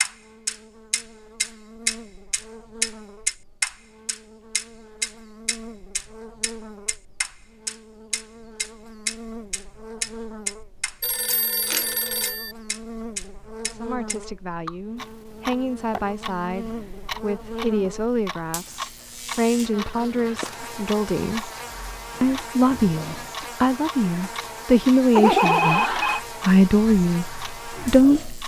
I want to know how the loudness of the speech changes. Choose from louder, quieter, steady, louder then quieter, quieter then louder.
louder.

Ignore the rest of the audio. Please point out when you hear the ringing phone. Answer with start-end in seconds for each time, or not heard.
11.0-12.6, 25.1-26.2.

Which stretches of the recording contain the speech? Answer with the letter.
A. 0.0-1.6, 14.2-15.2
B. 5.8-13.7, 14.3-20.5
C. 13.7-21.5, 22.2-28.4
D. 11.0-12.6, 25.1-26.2
C.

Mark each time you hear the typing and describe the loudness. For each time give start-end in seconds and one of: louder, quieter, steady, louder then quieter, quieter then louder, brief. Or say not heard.
not heard.